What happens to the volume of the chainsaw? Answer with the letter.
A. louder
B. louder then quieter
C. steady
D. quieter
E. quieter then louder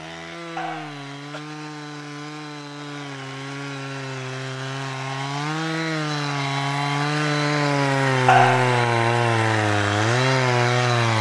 A.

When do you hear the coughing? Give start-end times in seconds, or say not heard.
0.6-1.4, 8.2-8.8.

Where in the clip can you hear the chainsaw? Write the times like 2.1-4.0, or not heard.
0.0-11.1.